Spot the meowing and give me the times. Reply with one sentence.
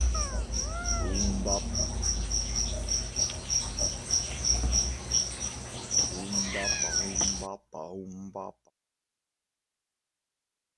You can hear the meowing from 0.1 to 1.3 s and from 6.2 to 7.1 s.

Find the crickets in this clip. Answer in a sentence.
The crickets can be heard from 0.0 to 7.5 s.